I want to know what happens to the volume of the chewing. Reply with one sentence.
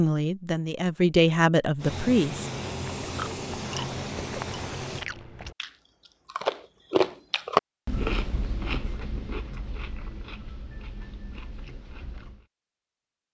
The loudness of the chewing goes up, then down.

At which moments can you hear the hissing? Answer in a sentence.
The hissing can be heard from 1.8 to 5.0 s.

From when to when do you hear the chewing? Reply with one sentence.
You can hear the chewing from 3.0 to 12.4 s.